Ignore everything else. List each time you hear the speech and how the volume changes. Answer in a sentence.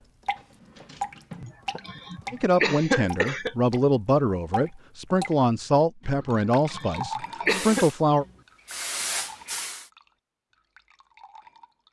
You can hear the speech from 2.3 to 8.2 s, at a steady volume.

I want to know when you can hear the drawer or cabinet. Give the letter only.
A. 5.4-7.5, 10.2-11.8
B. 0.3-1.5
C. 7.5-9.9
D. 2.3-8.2
B.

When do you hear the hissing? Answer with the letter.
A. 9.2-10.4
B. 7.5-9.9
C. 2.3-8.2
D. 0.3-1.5
B.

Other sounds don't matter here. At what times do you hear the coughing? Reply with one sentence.
You can hear the coughing from 1.4 to 3.5 s and from 6.2 to 7.8 s.